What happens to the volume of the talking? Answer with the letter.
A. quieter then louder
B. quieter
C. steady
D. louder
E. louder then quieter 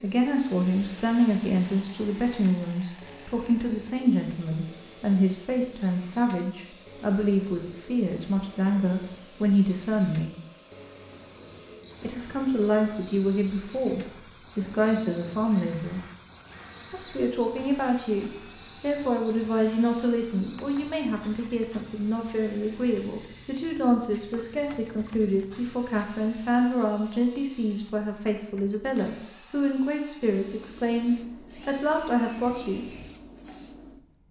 C.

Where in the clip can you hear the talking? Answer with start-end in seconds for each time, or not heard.
0.0-10.3, 12.0-16.0, 16.9-33.0.